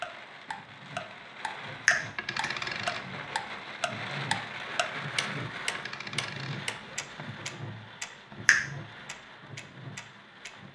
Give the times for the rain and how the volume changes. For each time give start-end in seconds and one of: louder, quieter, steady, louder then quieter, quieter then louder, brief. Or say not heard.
0.0-10.7 louder then quieter.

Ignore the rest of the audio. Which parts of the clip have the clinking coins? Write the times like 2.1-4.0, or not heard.
2.1-3.5, 5.7-7.2.